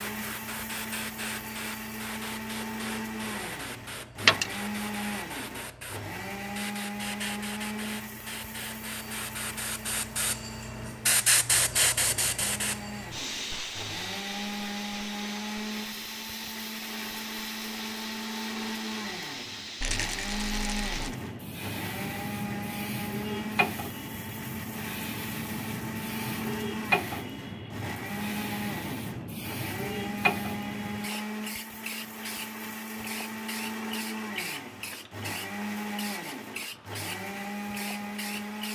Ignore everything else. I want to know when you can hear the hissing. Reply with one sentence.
You can hear the hissing from 0.0 to 38.7 s.